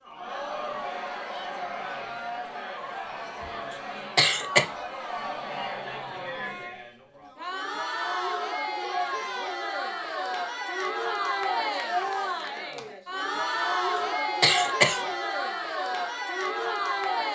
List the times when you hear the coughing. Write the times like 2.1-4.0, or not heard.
4.2-4.7, 14.4-15.1.